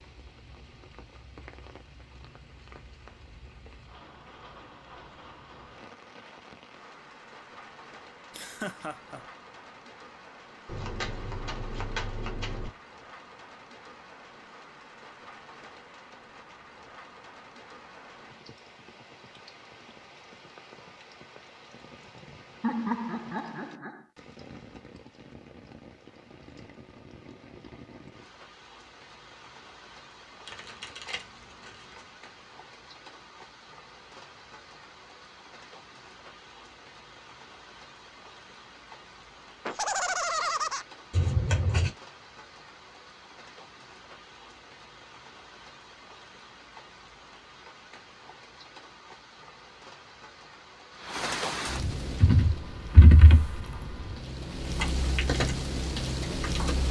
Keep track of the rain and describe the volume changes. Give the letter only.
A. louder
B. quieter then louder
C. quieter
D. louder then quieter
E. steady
A.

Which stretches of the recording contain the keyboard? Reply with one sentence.
The keyboard can be heard from 52.0 to 54.2 s and from 54.8 to 56.8 s.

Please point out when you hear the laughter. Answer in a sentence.
The laughter can be heard from 8.3 to 9.2 s, from 22.6 to 24.0 s and from 39.6 to 40.9 s.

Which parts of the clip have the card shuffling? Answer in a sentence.
You can hear the card shuffling from 10.7 to 12.7 s, from 30.4 to 32.0 s and from 41.1 to 41.9 s.